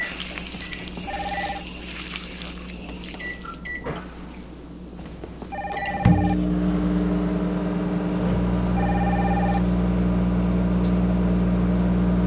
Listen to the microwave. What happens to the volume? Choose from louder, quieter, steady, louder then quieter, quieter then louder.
louder.